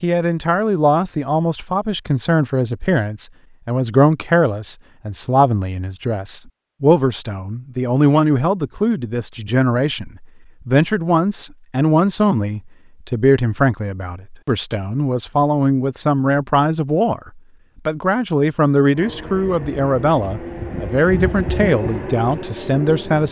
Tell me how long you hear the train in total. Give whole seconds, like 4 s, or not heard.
4 s.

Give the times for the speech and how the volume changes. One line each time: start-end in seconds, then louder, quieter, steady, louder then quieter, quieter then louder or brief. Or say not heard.
0.0-23.2 steady.